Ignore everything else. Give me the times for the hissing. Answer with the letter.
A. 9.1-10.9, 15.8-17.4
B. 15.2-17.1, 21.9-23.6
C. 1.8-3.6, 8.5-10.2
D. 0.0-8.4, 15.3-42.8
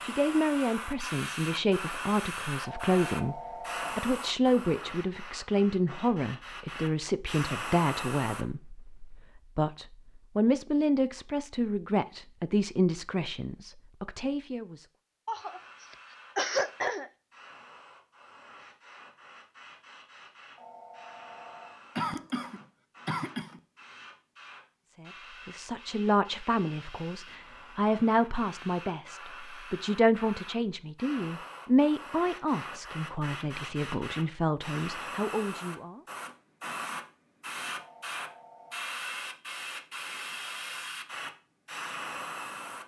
D.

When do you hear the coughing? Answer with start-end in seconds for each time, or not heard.
15.2-17.1, 21.9-23.6.